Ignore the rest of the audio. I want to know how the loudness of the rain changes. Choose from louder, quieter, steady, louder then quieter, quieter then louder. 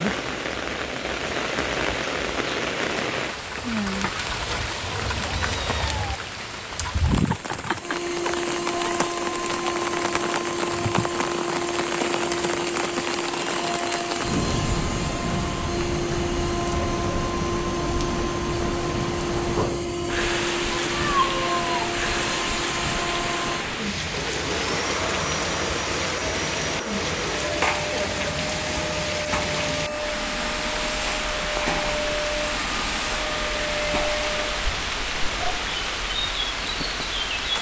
steady.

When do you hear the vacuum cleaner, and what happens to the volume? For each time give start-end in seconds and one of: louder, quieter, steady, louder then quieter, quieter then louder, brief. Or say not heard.
7.8-34.7 steady.